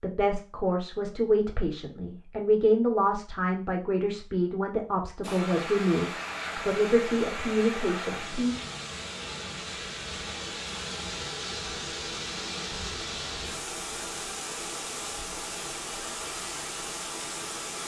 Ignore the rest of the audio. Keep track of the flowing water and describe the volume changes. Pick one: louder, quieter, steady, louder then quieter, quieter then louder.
steady.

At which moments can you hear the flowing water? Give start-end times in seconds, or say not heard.
5.2-17.8.